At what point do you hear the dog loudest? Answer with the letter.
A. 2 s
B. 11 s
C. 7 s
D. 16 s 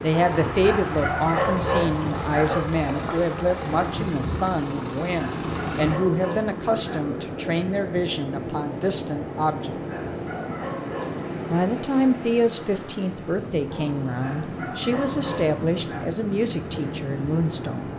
A.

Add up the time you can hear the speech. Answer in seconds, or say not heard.
16 s.